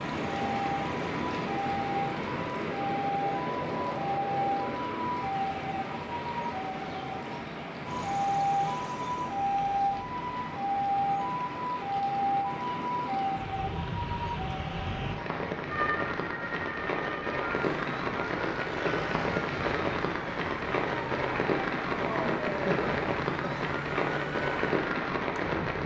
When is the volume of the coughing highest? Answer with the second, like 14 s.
22 s.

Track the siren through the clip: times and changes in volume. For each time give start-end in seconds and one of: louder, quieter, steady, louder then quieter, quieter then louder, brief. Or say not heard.
0.0-25.8 quieter.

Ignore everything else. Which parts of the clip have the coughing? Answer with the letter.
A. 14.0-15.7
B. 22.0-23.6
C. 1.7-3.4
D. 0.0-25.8
B.